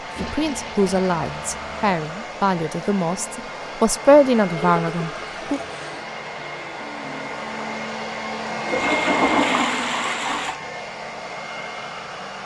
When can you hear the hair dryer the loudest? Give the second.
9 s.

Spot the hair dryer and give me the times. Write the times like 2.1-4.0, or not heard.
0.0-12.4.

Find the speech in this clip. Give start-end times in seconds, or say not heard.
0.2-5.6.